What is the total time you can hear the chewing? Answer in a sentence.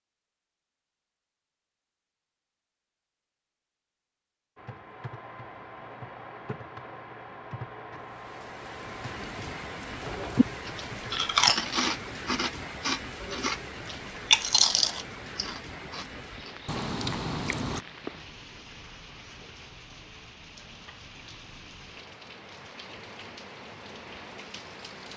You can hear the chewing for 7 seconds altogether.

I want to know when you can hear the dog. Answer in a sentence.
The dog can't be heard in this clip.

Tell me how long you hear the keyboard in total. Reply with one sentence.
You can hear the keyboard for 7 seconds altogether.